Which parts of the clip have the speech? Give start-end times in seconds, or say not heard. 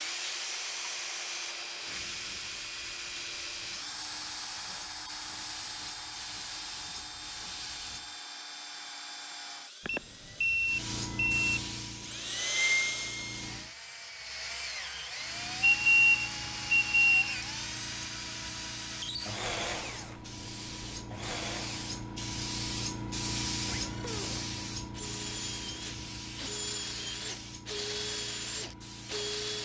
not heard.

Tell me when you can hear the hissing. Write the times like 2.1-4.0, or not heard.
0.0-8.1, 10.7-13.8, 15.2-29.5.